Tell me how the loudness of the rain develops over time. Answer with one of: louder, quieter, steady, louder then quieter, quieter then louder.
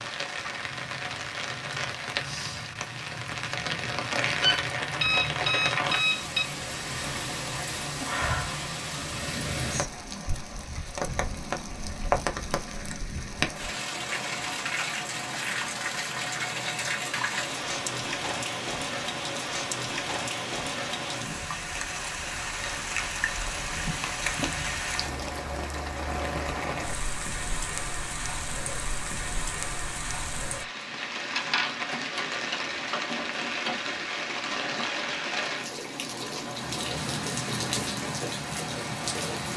steady.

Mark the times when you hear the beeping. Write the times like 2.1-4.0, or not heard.
4.4-6.5.